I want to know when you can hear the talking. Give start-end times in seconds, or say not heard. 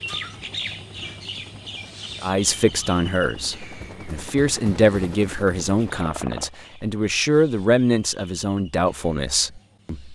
2.2-10.0.